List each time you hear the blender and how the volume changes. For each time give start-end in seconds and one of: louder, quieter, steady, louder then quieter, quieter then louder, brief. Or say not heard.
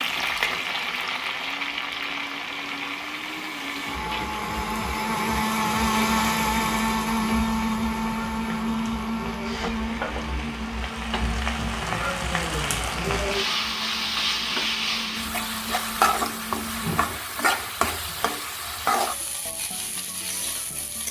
0.0-17.1 louder then quieter.